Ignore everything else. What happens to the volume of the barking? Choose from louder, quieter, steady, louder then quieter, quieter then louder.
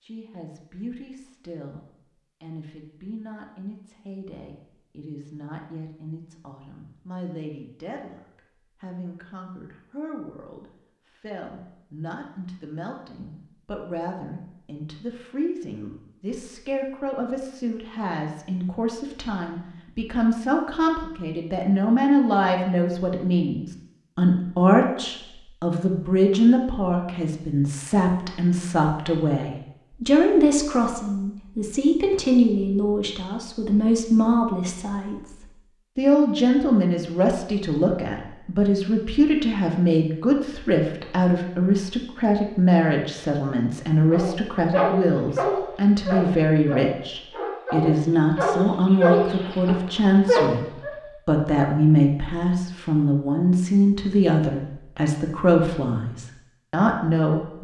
quieter then louder.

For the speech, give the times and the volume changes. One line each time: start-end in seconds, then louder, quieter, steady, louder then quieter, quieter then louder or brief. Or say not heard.
0.0-57.5 louder.